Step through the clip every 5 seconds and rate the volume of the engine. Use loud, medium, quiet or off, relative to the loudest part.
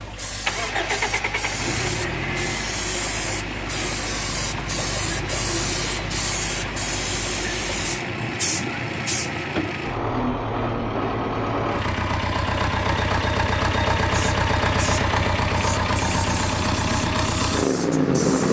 medium, medium, loud, loud.